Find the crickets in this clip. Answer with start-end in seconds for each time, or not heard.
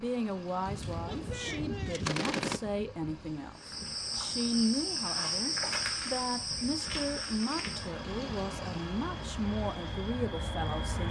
3.5-11.0.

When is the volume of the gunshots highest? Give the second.
2 s.